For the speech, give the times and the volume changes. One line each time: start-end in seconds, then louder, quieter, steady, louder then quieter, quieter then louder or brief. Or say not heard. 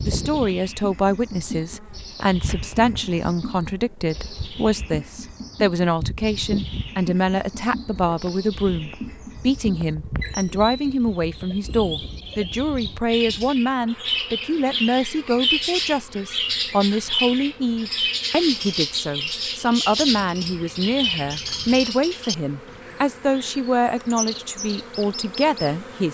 0.0-26.0 steady.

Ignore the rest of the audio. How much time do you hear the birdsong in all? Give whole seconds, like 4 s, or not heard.
26 s.